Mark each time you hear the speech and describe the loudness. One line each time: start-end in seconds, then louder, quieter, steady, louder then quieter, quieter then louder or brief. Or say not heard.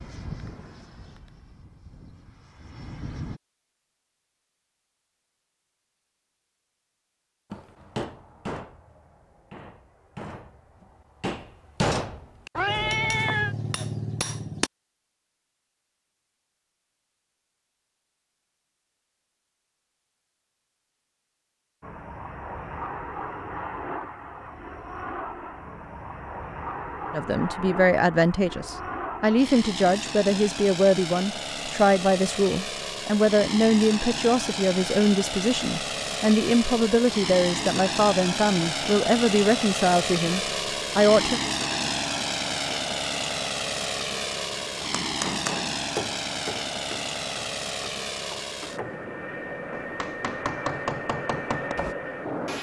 27.1-41.4 steady.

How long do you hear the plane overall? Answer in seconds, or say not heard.
34 s.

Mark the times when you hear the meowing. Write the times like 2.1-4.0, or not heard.
12.6-13.6.